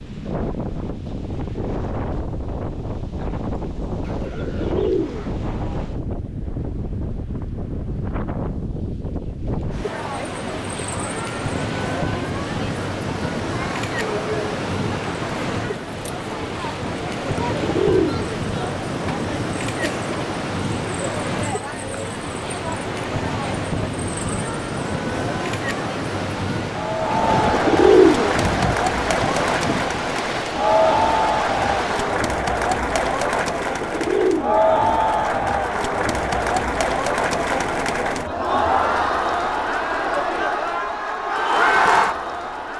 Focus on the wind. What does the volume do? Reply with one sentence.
The volume of the wind stays about the same.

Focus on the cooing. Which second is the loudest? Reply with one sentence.
The volume of the cooing peaks at 28 seconds.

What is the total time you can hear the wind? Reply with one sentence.
You can hear the wind for 32 seconds altogether.